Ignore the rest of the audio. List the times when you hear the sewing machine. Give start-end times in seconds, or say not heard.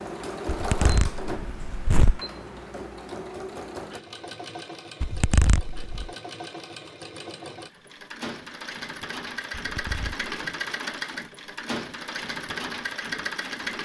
0.0-13.8.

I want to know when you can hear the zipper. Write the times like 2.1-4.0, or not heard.
0.5-2.2, 5.0-6.1, 9.5-10.2.